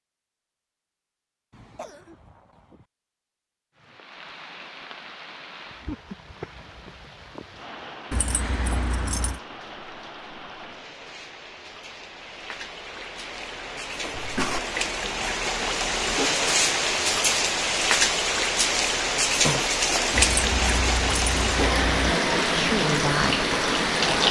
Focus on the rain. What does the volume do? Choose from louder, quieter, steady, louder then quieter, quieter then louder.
louder.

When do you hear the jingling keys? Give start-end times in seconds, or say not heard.
8.1-9.4, 20.1-22.1.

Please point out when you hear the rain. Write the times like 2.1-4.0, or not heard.
3.8-24.2.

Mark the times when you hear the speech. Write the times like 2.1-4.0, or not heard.
22.5-23.4.